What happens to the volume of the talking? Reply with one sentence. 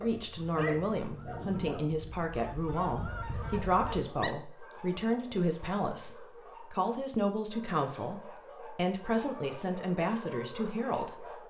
The volume of the talking stays about the same.